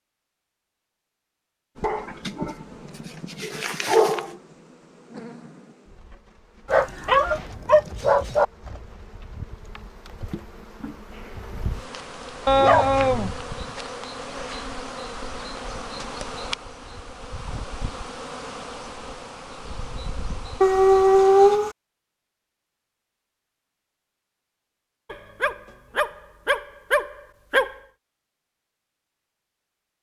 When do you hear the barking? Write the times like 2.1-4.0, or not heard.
1.8-2.5, 3.3-4.3, 6.7-8.4, 12.4-13.3, 20.6-21.8, 25.1-27.8.